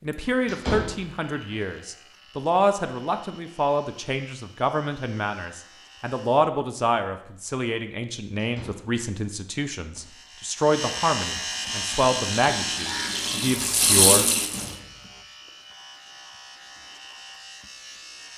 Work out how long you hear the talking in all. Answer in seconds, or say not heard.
14 s.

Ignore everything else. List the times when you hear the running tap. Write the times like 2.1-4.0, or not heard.
11.4-14.8.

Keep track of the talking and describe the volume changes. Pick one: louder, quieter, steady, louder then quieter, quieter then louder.
steady.